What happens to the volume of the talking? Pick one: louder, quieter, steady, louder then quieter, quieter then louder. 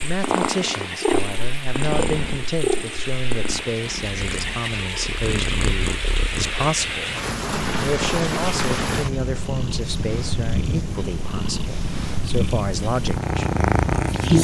steady.